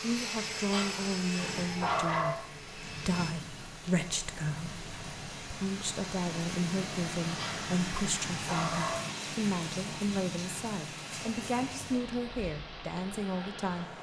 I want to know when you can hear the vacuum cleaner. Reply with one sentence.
You can hear the vacuum cleaner from 0.0 to 3.4 s.